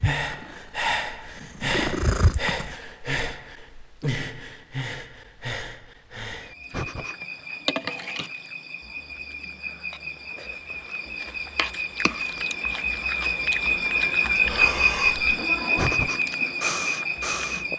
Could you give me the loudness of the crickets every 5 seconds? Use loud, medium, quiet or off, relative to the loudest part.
off, medium, loud, loud.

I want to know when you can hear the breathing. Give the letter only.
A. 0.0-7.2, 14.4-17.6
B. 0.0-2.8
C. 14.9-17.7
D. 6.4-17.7
A.